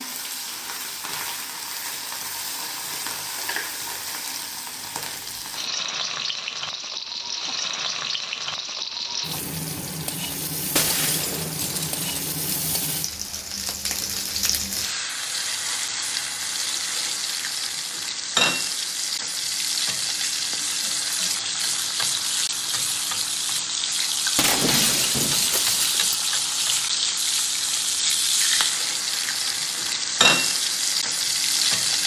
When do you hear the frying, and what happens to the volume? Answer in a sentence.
The frying can be heard from 0.0 to 32.0 s, getting louder.